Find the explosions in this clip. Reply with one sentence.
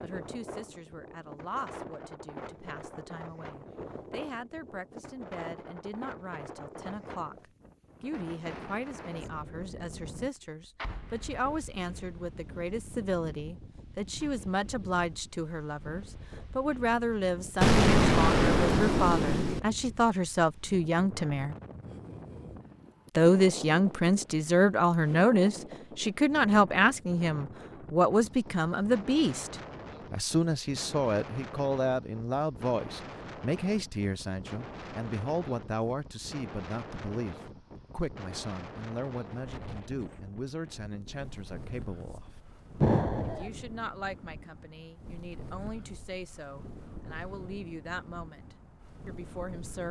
The explosions can be heard from 10.8 to 11.4 s, from 17.6 to 19.6 s and from 42.8 to 43.5 s.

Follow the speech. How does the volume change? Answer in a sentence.
The volume of the speech goes up, then down.